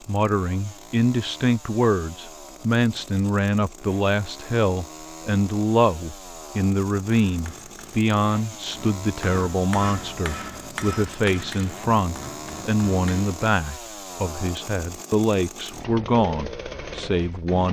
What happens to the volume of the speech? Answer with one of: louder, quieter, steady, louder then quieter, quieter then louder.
steady.